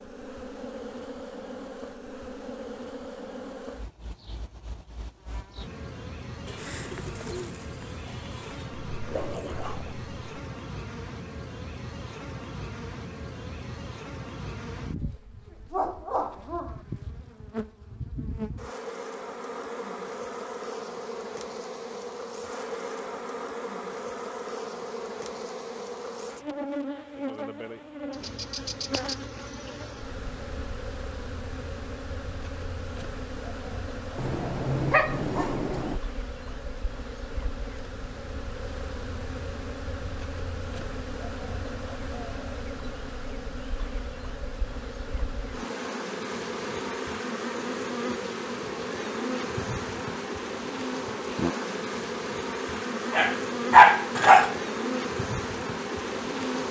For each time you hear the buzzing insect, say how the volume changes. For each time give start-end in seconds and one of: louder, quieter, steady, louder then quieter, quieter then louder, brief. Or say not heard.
0.0-56.6 louder.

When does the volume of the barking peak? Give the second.
54 s.